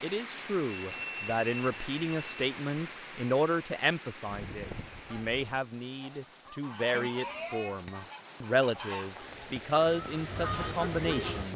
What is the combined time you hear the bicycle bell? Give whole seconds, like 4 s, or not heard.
3 s.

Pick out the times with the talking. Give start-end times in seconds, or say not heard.
0.0-11.5.